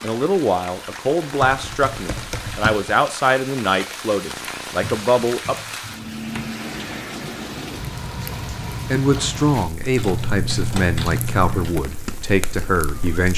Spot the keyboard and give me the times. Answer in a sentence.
The keyboard can be heard from 1.4 to 3.0 s, from 4.8 to 6.5 s and from 9.9 to 11.8 s.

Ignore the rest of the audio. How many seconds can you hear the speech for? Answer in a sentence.
The speech can be heard for 10 seconds in total.